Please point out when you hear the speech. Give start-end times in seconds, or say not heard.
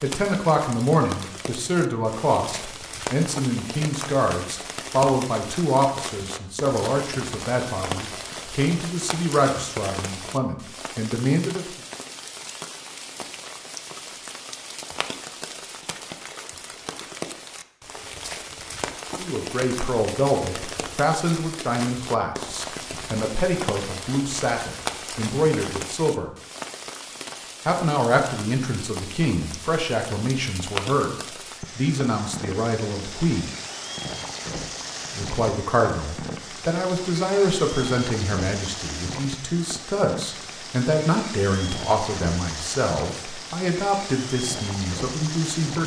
0.0-11.7, 19.1-26.3, 27.6-33.5, 35.1-45.8.